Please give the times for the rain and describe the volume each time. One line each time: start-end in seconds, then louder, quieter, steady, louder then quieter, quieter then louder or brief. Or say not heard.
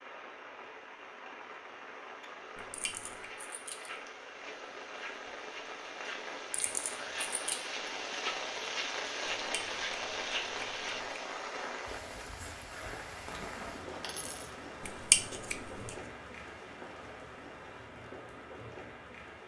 0.0-19.4 louder then quieter.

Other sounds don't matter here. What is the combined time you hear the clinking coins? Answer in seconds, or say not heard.
3 s.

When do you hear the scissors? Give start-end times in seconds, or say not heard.
2.5-3.2, 9.2-11.2, 14.8-15.9.